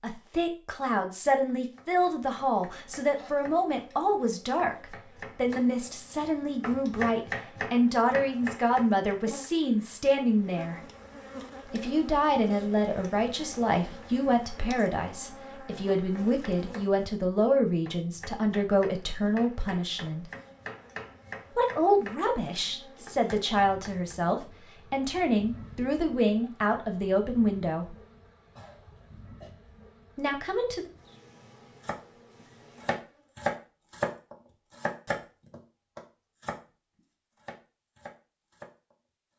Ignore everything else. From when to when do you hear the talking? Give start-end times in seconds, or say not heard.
0.0-10.8, 11.7-20.2, 21.6-27.9, 30.1-30.9.